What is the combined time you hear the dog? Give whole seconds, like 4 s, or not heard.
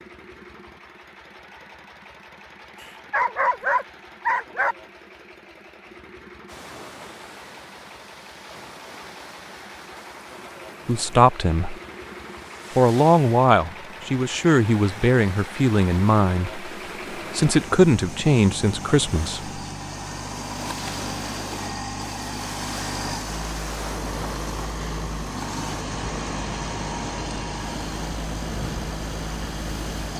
2 s.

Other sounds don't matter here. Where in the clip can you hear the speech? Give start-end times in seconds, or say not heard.
10.8-11.8, 12.8-19.6.